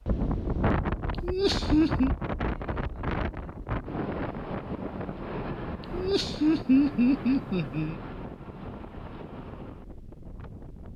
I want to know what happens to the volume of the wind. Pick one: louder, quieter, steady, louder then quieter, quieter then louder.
quieter.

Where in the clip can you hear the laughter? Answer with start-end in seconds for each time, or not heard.
1.2-2.1, 5.9-8.0.